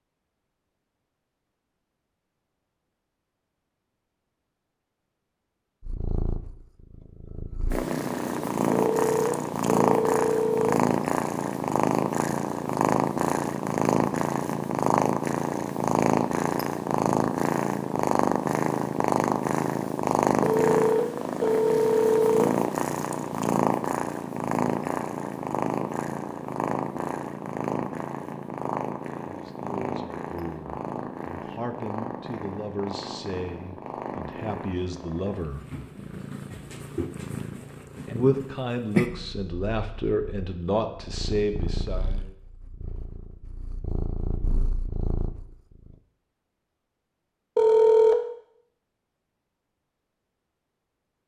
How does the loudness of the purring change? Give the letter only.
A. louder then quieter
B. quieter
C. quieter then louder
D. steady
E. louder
B.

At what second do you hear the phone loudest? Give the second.
48 s.